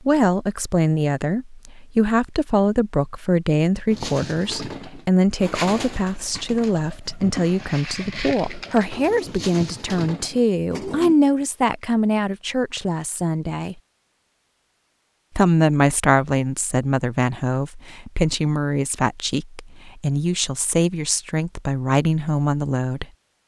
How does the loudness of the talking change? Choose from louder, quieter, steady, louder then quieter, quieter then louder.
steady.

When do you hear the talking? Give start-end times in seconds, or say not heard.
0.0-13.8, 15.3-23.1.